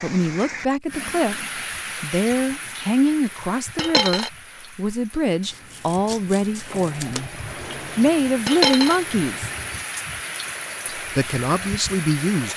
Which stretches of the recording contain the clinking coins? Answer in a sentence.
The clinking coins can be heard from 3.8 to 4.3 s and from 8.4 to 9.0 s.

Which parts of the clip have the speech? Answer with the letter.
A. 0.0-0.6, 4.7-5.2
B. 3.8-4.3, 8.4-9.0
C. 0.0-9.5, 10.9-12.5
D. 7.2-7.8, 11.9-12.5
C.